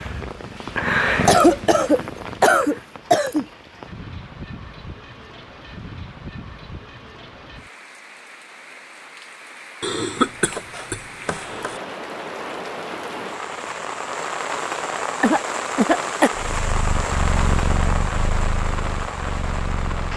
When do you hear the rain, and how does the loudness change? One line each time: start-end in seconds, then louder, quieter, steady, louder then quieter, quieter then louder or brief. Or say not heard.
0.0-20.1 louder.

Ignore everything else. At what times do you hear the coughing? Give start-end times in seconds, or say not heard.
1.2-3.5, 9.8-11.8, 15.2-16.3.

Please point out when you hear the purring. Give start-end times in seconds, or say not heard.
0.0-2.9, 16.4-20.1.